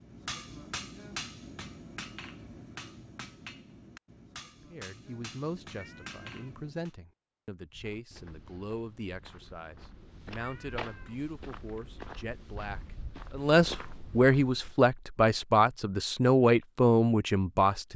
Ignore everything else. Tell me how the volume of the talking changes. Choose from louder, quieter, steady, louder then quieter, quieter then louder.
louder.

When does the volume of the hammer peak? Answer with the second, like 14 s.
1 s.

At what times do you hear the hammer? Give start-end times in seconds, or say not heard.
0.0-6.9.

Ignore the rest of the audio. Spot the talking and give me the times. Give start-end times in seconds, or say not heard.
4.7-17.9.